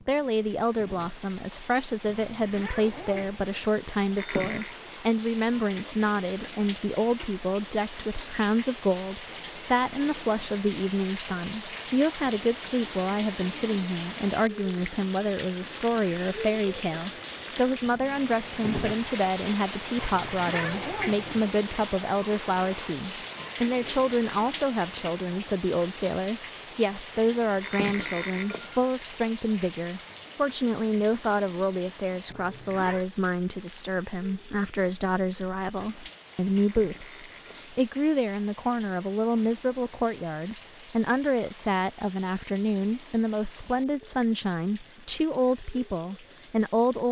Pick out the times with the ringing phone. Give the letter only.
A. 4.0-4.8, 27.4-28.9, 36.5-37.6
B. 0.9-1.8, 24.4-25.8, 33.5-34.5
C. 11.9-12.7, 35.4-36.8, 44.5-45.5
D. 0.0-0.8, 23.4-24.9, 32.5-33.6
A.